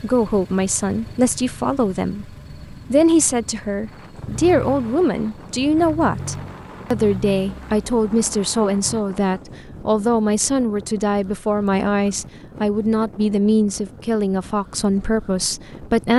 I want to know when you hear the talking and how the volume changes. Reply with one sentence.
The talking can be heard from 0.0 to 16.1 s, at a steady volume.